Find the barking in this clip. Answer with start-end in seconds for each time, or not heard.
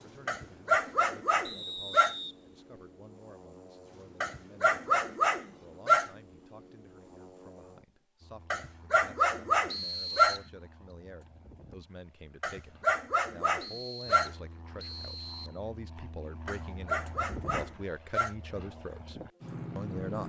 0.2-2.1, 4.2-6.1, 8.5-10.4, 12.4-14.3, 16.4-18.4.